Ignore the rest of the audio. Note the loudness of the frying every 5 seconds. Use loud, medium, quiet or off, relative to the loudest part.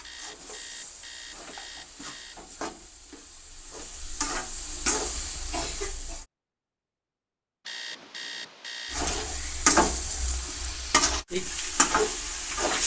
medium, loud, loud.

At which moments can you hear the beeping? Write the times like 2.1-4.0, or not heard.
0.0-2.5, 7.7-9.2.